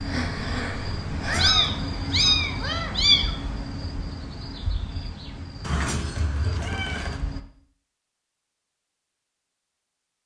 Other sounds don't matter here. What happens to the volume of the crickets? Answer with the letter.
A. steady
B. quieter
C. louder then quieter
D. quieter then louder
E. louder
B.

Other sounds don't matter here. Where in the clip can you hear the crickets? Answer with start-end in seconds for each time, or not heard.
0.0-7.4.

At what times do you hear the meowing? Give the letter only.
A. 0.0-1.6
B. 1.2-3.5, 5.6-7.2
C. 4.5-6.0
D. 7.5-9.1
B.